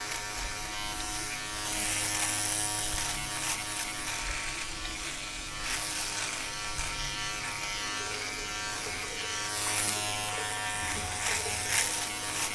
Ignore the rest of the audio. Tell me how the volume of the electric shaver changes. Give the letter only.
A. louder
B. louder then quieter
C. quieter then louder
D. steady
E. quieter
D.